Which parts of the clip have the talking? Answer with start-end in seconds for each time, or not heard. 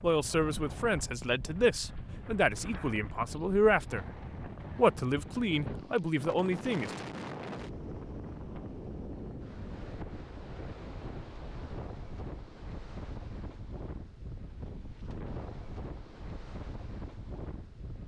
0.0-4.0, 4.8-6.9.